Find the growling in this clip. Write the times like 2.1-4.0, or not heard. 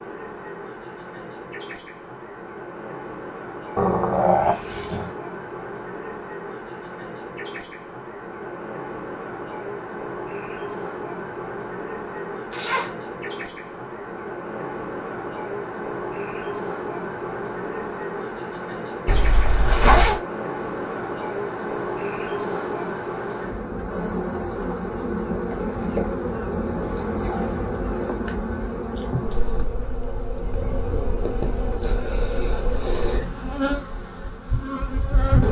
3.8-5.2.